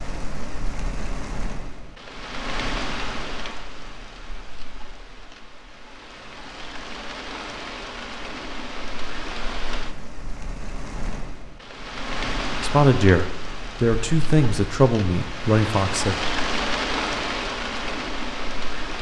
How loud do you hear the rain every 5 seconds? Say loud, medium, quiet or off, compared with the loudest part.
medium, medium, medium, loud.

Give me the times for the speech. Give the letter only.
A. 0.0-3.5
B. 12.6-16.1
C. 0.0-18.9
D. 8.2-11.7
B.